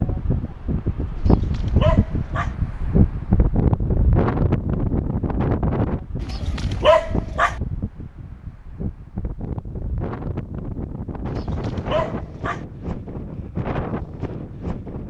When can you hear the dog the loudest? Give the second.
7 s.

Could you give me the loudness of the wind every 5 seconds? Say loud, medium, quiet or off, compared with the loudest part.
loud, medium, medium.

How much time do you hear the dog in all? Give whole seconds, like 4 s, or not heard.
4 s.